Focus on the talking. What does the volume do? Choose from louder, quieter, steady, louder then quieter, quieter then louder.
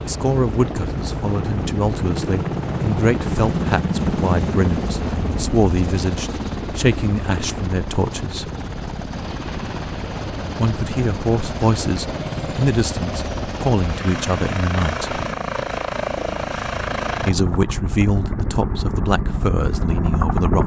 steady.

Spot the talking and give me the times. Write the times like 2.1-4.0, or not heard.
0.1-8.5, 10.6-15.2, 17.2-20.6.